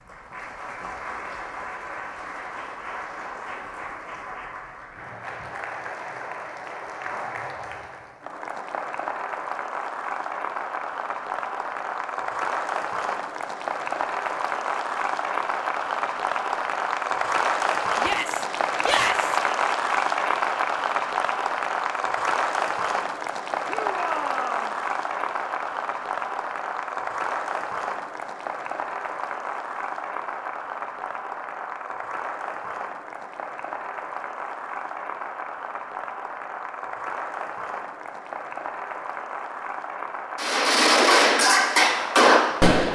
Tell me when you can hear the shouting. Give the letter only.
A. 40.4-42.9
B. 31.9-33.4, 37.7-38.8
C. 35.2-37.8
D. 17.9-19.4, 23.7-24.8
D.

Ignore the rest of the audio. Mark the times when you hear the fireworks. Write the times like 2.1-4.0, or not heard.
40.4-42.9.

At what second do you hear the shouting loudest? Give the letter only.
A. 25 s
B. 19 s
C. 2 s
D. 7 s
B.